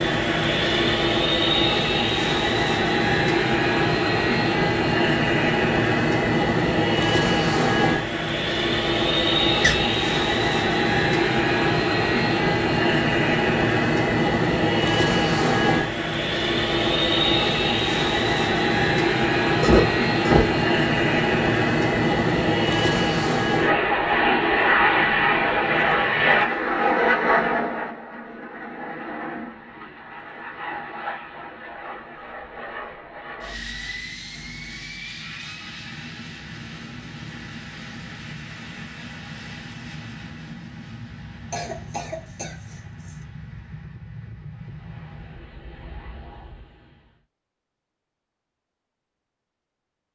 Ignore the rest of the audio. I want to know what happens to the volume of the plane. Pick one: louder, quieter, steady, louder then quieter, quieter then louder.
quieter.